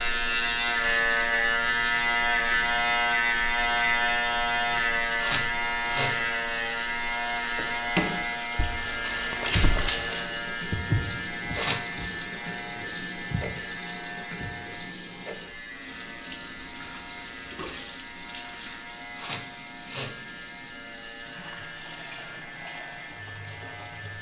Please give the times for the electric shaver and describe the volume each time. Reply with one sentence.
The electric shaver can be heard from 0.0 to 24.1 s, getting quieter.